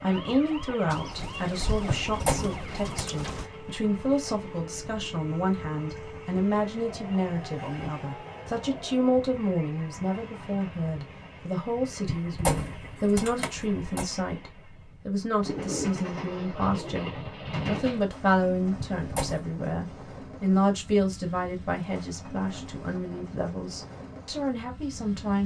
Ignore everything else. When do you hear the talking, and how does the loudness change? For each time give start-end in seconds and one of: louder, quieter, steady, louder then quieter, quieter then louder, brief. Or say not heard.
0.0-25.4 steady.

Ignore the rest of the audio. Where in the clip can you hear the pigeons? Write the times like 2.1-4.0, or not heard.
0.9-3.5, 15.4-17.1.